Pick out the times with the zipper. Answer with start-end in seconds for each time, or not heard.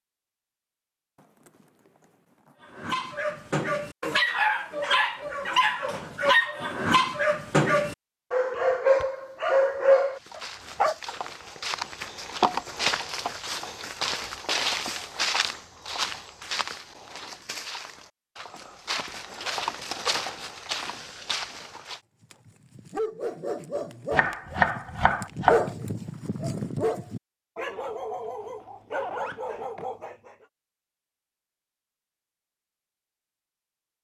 1.1-2.5, 18.6-19.9, 28.2-29.9.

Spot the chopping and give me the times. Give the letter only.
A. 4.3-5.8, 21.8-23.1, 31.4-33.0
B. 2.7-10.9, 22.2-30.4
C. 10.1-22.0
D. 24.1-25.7
D.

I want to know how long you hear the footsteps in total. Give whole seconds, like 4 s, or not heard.
12 s.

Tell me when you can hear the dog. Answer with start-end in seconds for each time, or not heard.
2.7-10.9, 22.2-30.4.